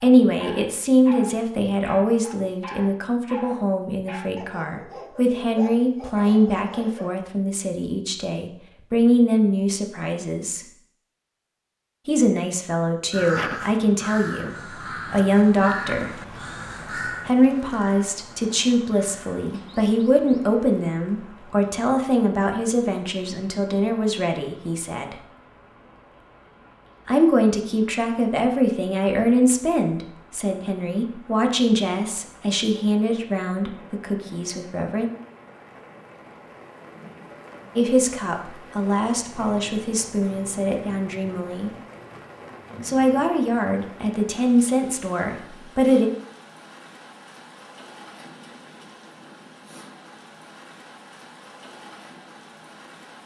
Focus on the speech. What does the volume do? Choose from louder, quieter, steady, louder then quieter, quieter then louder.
steady.